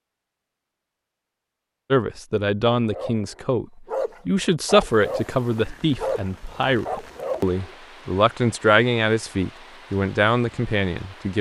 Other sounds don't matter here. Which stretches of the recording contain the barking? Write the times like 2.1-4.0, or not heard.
2.8-7.8.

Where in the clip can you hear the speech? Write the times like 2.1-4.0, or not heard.
1.9-3.6, 4.2-11.3.